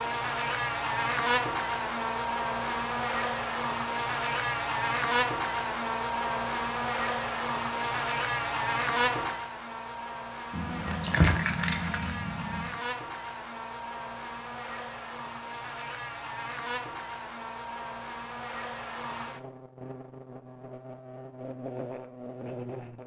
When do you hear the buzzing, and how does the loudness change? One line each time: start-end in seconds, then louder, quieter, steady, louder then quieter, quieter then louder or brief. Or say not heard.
0.0-23.0 quieter.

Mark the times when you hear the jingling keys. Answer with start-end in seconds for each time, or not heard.
10.5-12.7.